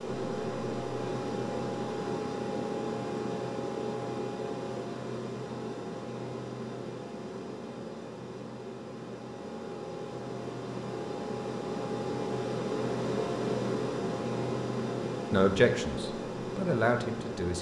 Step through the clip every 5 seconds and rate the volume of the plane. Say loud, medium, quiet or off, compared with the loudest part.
loud, medium, loud, loud.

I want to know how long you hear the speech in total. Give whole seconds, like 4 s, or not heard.
2 s.